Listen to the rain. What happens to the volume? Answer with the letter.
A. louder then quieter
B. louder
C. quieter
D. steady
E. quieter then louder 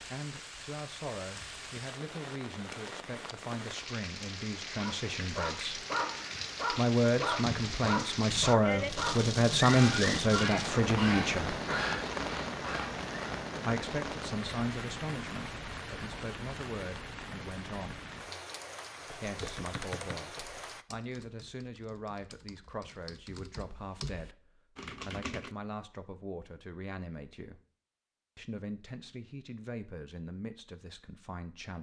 A.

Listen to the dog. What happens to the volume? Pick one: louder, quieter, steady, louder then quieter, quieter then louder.
steady.